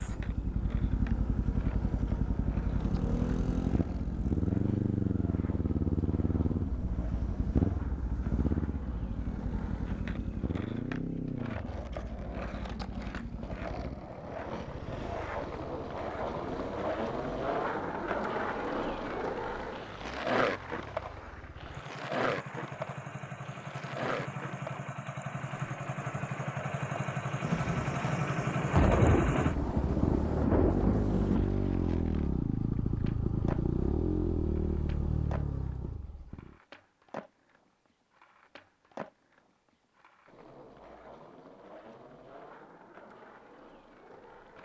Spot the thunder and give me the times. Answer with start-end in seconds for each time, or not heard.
27.4-31.5.